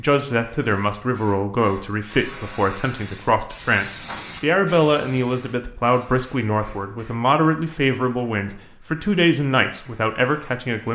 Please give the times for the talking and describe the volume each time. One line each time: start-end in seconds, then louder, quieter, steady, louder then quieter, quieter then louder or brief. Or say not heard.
0.0-10.8 steady.